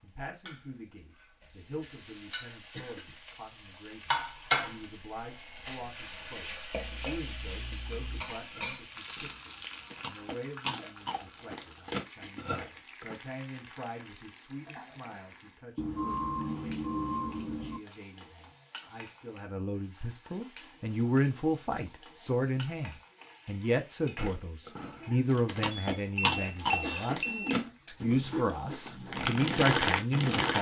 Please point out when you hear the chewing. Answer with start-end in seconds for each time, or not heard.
6.8-13.2, 24.1-30.5.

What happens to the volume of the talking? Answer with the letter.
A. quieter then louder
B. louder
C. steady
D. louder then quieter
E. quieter
B.